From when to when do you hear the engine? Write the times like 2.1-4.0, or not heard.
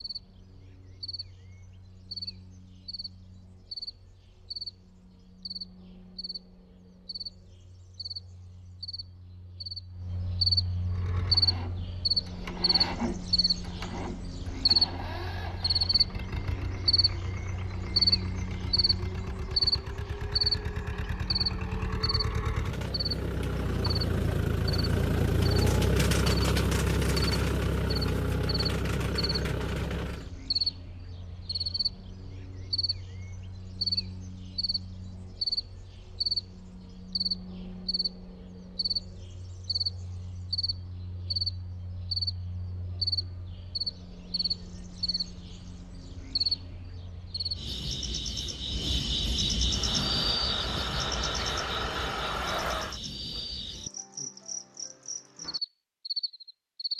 10.8-30.3, 49.6-53.0.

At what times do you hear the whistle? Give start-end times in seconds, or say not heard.
not heard.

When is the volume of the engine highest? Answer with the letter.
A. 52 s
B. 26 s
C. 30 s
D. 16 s
B.